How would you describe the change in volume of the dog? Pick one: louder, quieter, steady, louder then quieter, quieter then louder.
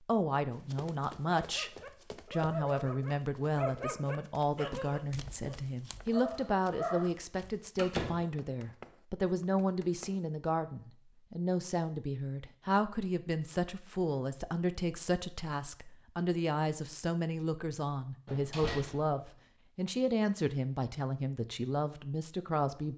quieter then louder.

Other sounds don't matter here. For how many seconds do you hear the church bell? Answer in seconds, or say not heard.
not heard.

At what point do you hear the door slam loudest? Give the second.
8 s.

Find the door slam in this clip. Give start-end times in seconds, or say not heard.
7.8-8.2, 18.2-19.4.